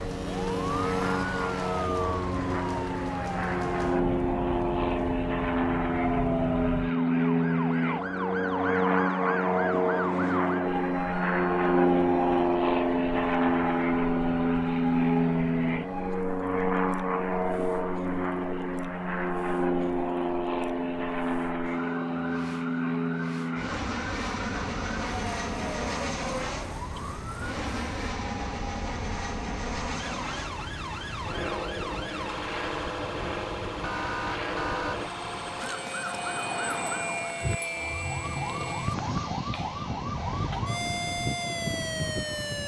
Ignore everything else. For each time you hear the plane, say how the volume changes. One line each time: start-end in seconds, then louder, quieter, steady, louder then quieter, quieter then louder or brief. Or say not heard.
0.0-42.6 quieter.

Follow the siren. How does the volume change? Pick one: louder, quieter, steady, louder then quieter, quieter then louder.
quieter then louder.